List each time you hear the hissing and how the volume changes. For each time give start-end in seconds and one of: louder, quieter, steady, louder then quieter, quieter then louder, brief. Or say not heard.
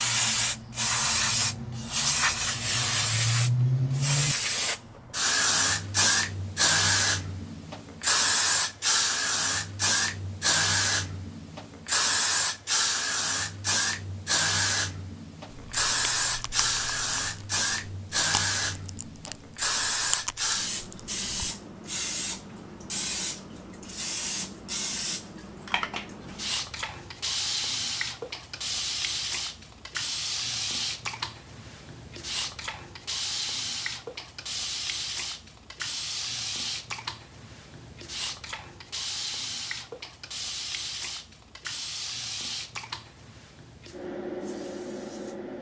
0.0-45.5 quieter.